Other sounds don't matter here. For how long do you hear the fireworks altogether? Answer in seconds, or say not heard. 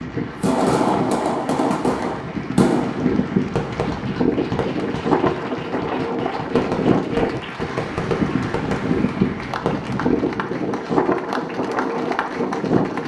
10 s.